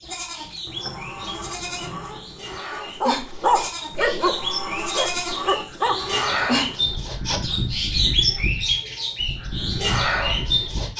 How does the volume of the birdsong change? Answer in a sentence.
The volume of the birdsong goes up.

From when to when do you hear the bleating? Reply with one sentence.
You can hear the bleating from 0.0 to 10.9 s.